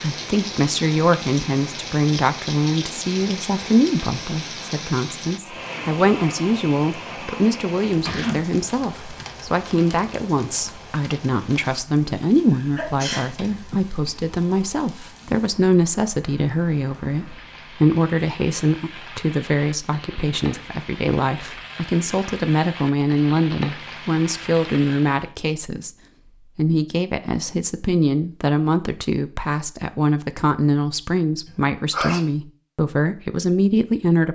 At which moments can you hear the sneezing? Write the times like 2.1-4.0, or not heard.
8.0-8.4, 12.5-13.8, 31.4-32.2.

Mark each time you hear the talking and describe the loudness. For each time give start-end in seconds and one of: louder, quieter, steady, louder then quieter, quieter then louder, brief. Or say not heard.
0.0-25.9 steady
26.6-34.3 steady.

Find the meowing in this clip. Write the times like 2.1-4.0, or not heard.
not heard.